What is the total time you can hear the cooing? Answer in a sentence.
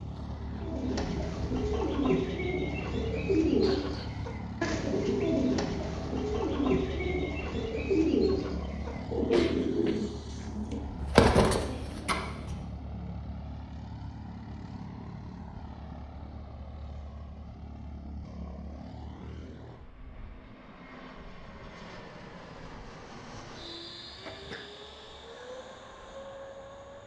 The cooing can be heard for 12 seconds in total.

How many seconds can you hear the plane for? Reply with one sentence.
You can hear the plane for 27 seconds altogether.